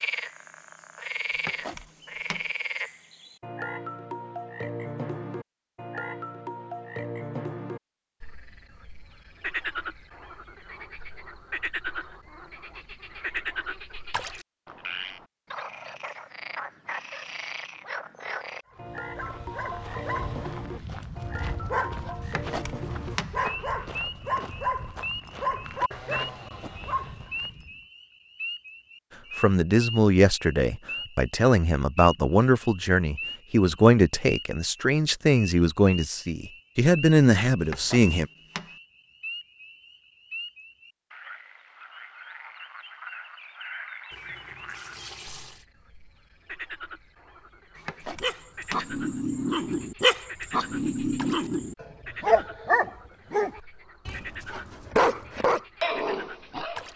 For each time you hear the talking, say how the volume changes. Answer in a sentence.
You can hear the talking from 29.4 to 38.2 s, at a steady volume.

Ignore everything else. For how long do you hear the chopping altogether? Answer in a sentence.
The chopping can be heard for 5 seconds in total.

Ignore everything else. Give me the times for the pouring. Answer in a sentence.
You can hear the pouring from 44.1 to 45.6 s.